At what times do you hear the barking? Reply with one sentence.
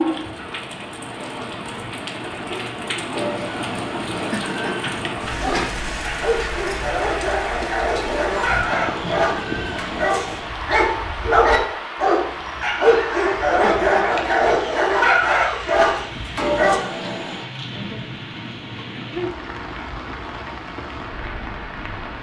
You can hear the barking from 5.4 to 16.8 s.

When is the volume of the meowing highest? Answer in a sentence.
The loudest moment of the meowing is at 17 seconds.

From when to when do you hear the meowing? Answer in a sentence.
You can hear the meowing from 3.1 to 5.2 s, from 8.0 to 10.1 s and from 16.4 to 17.4 s.